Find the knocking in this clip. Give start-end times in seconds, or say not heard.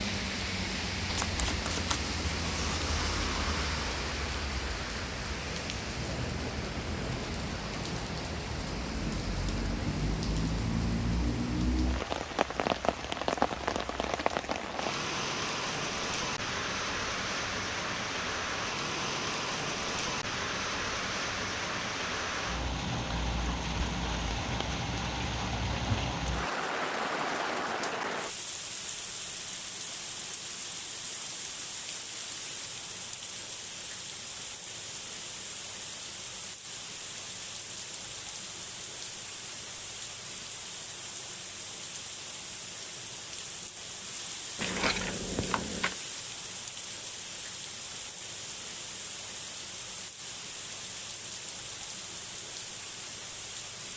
not heard.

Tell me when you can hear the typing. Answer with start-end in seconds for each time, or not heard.
not heard.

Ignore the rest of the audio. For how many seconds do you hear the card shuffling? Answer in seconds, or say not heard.
2 s.